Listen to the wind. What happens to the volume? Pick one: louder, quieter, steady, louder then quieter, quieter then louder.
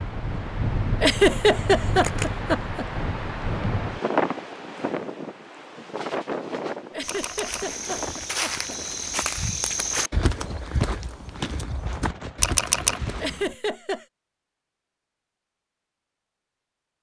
quieter.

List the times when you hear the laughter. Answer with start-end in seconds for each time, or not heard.
1.0-2.9, 6.9-8.8, 13.2-14.1.